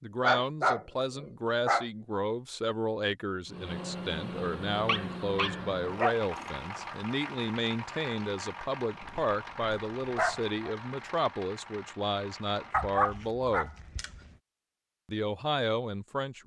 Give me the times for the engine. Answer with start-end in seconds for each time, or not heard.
3.5-13.1.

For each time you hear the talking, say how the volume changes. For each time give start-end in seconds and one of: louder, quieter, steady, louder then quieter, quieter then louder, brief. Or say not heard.
0.0-13.7 steady
15.1-16.4 brief.